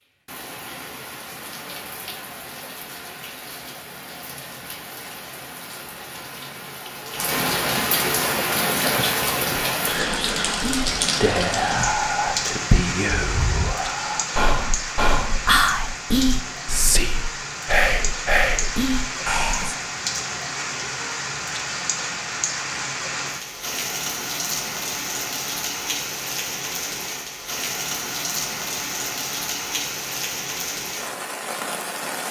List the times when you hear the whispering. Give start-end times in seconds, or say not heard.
8.2-19.8.